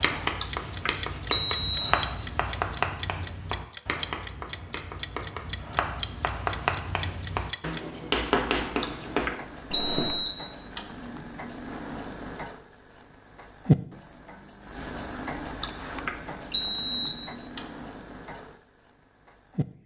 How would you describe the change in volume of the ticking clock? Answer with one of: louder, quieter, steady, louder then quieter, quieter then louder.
louder then quieter.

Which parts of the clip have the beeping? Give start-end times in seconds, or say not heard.
0.2-1.9, 8.7-10.8, 15.4-17.6.